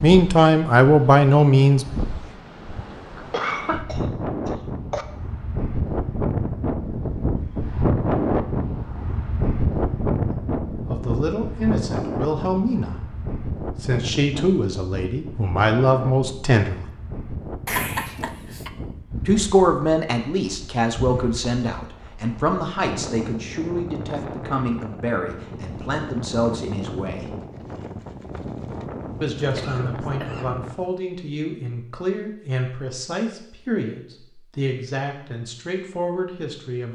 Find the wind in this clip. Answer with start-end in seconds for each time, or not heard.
0.0-30.9.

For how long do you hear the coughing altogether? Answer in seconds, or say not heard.
4 s.